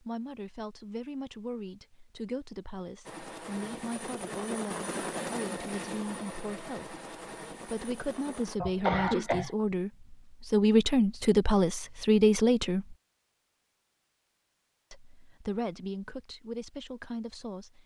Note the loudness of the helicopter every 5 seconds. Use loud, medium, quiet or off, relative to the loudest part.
loud, loud, off, off.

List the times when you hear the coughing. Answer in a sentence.
The coughing can be heard from 8.6 to 9.5 s.